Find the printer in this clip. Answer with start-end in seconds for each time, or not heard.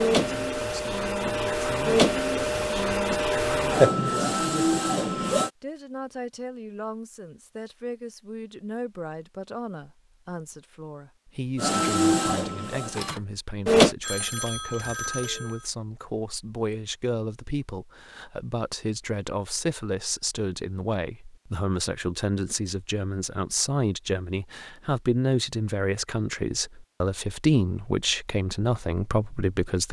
0.0-5.5, 11.6-13.9.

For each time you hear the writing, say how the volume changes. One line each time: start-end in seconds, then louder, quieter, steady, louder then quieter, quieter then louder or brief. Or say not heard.
not heard.